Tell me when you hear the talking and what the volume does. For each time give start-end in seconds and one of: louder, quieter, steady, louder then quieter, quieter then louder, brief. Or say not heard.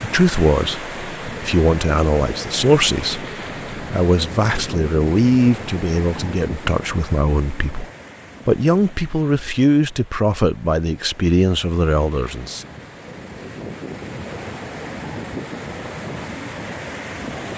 0.0-12.7 steady.